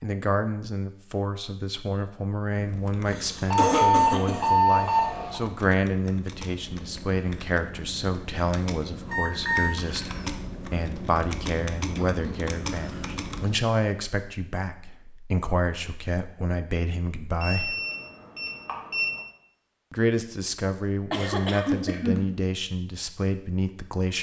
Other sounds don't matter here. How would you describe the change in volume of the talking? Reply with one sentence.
The volume of the talking stays about the same.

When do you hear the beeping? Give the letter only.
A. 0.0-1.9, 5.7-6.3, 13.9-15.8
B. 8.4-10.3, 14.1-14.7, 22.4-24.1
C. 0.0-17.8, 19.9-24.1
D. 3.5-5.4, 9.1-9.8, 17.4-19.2
D.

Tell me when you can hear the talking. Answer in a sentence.
The talking can be heard from 0.0 to 17.8 s and from 19.9 to 24.1 s.